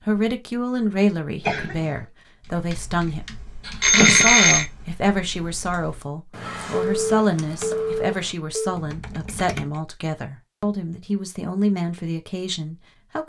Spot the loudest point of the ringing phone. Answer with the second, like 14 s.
4 s.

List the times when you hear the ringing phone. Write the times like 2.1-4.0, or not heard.
3.8-4.7, 7.0-8.8.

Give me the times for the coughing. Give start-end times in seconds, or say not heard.
1.4-2.0.